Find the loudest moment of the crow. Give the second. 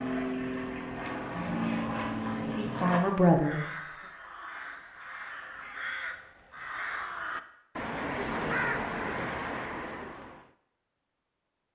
9 s.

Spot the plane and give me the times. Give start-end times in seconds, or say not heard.
0.0-3.0.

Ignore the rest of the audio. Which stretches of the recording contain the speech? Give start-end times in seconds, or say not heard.
2.4-4.1.